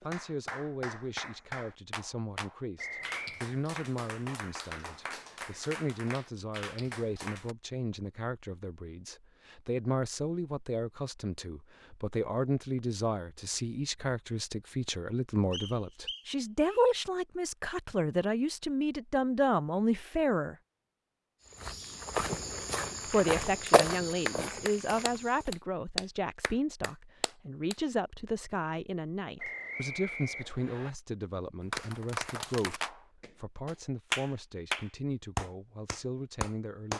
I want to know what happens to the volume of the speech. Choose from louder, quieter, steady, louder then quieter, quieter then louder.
louder then quieter.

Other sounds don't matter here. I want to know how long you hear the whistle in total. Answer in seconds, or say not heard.
4 s.